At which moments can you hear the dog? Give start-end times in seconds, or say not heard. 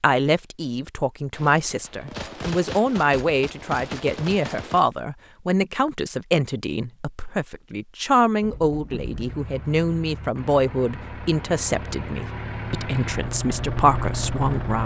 not heard.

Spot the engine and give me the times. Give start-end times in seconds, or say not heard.
8.4-14.8.